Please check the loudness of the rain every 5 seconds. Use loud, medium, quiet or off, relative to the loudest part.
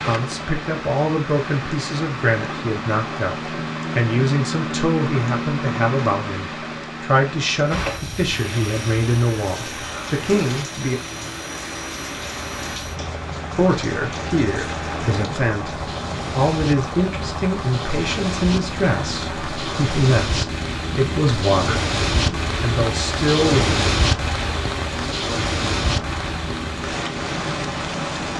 medium, medium, medium, medium, loud, loud.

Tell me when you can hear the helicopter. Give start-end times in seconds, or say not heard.
0.0-28.3.